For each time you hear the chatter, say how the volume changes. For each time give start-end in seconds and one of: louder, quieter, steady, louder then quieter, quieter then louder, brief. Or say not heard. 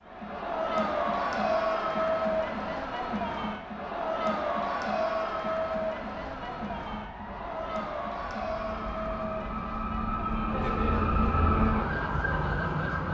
0.0-13.0 quieter.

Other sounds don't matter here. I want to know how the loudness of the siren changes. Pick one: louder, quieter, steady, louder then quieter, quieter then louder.
louder.